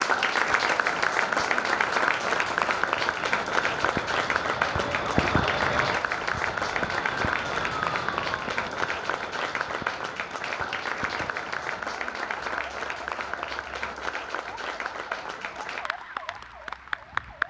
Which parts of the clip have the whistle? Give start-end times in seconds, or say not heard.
not heard.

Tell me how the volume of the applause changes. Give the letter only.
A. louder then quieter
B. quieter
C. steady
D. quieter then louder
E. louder
B.